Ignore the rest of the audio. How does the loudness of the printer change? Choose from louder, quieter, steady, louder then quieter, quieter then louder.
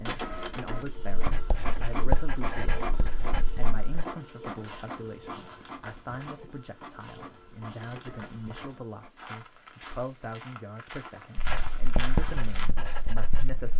quieter.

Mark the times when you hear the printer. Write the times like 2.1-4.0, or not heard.
0.0-9.2.